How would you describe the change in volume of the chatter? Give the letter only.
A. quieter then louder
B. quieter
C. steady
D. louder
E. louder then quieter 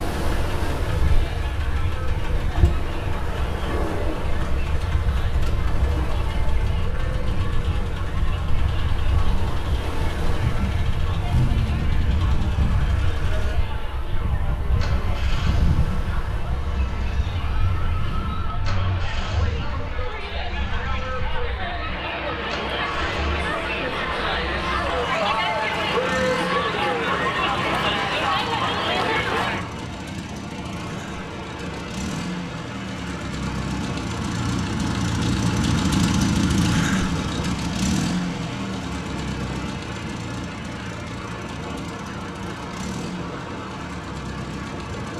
D.